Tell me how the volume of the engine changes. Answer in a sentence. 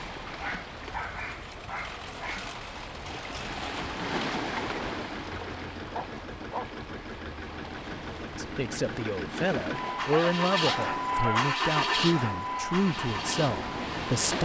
The volume of the engine goes up.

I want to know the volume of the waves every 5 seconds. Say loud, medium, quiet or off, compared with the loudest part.
loud, medium, loud.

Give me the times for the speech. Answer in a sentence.
The speech can be heard from 8.3 to 14.4 s.